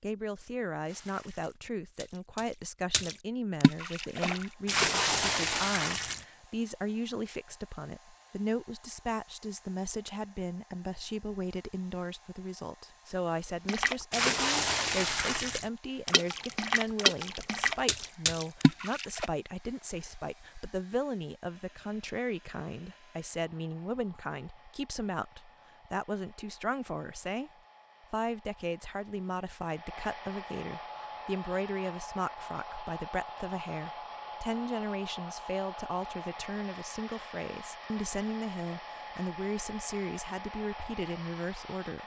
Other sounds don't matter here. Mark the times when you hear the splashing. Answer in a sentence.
You can hear the splashing from 0.8 to 6.2 s and from 13.7 to 19.3 s.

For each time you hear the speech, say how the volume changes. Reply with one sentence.
You can hear the speech from 0.0 to 27.5 s, at a steady volume; and from 28.1 to 42.0 s, at a steady volume.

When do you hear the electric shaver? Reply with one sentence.
The electric shaver can't be heard in this clip.